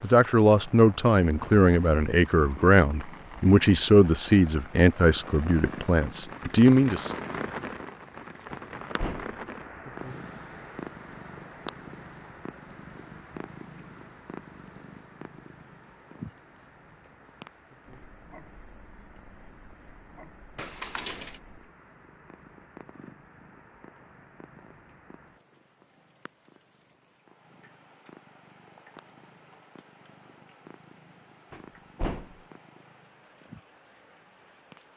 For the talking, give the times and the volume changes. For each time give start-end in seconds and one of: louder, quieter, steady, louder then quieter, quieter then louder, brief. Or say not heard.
0.0-7.1 steady.